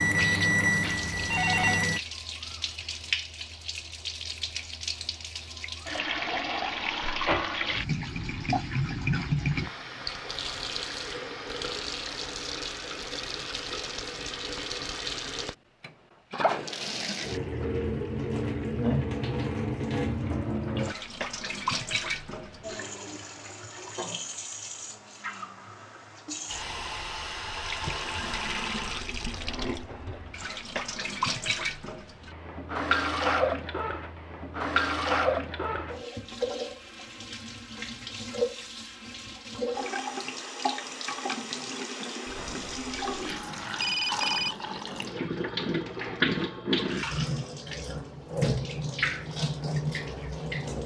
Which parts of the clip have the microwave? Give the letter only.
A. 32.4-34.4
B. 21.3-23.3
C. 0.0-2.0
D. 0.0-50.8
C.